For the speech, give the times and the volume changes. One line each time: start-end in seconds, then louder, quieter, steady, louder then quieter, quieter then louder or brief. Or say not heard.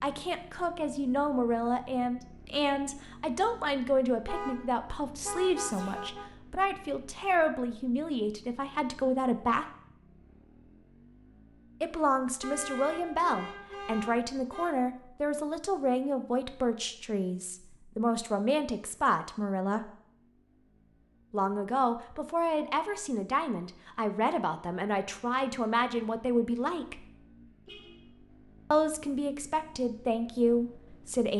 0.0-9.7 steady
11.8-19.9 steady
21.3-27.1 steady
28.7-31.3 brief.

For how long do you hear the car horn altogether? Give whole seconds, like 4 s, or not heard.
5 s.